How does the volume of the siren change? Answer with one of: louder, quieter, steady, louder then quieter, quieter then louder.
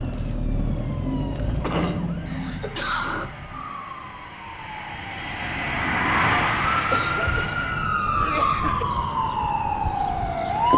quieter then louder.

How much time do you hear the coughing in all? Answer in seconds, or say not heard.
4 s.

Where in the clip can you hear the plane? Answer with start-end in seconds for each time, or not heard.
2.1-8.0.